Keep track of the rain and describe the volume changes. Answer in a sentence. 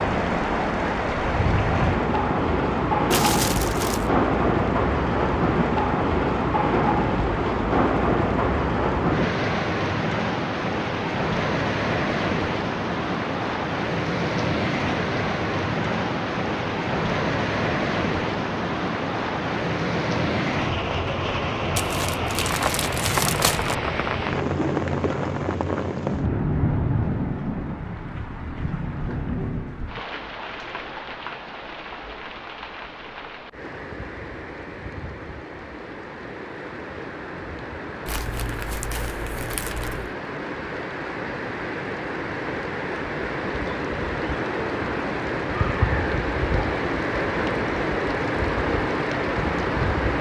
The volume of the rain goes down, then up.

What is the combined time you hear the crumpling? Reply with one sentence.
You can hear the crumpling for 5 seconds altogether.